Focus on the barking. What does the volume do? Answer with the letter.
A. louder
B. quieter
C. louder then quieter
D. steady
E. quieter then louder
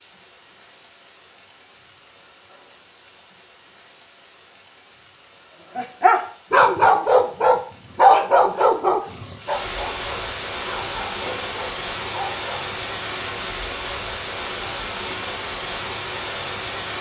B.